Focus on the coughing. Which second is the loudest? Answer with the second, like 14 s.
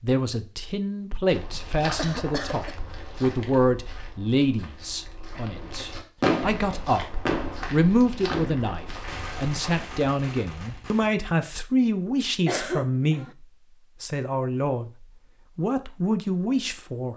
13 s.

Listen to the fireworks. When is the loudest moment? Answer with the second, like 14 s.
6 s.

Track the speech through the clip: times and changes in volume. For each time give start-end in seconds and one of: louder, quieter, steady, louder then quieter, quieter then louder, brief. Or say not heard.
0.0-17.1 steady.